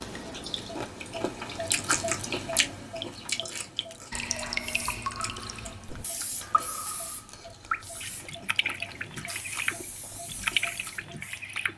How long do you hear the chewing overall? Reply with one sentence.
You can hear the chewing for 11 seconds altogether.